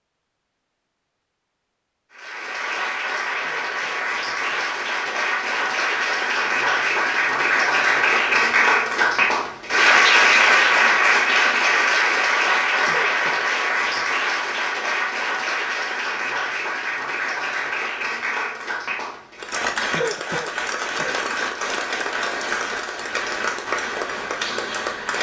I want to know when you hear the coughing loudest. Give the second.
20 s.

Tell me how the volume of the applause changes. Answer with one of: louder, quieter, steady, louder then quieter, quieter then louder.
louder then quieter.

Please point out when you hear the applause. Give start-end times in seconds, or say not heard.
2.1-25.1.